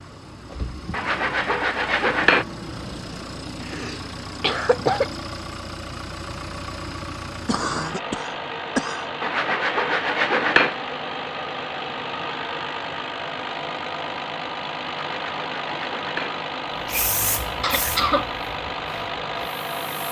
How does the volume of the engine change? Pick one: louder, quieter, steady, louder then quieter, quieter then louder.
louder.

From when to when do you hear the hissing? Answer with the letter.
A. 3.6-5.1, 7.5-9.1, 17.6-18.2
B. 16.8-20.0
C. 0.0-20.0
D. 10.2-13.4
B.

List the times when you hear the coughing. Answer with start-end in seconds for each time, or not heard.
3.6-5.1, 7.5-9.1, 17.6-18.2.